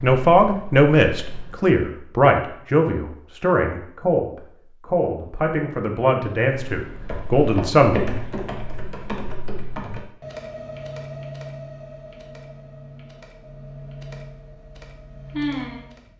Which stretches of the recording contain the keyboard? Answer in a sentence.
The keyboard can be heard from 0.0 to 1.8 s and from 6.7 to 16.1 s.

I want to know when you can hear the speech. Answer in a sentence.
You can hear the speech from 0.0 to 8.0 s.